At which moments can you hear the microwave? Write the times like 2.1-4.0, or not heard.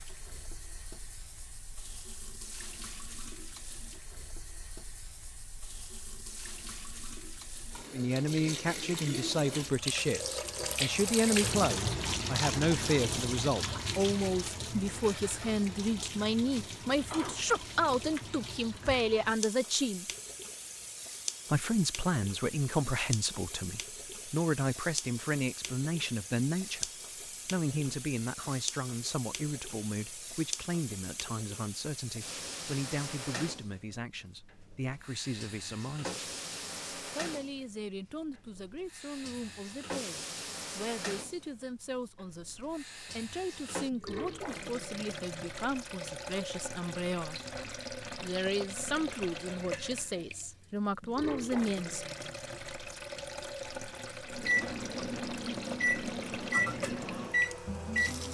54.3-58.2.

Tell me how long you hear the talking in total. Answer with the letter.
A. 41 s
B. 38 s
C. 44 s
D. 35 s
A.